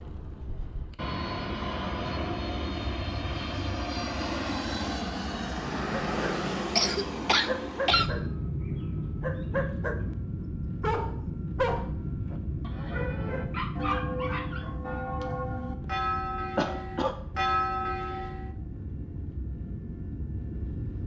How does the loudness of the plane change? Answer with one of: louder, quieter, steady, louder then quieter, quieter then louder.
quieter.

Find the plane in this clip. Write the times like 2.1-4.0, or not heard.
0.0-21.0.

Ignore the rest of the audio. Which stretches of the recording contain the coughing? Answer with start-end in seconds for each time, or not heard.
6.8-8.1, 16.6-17.1.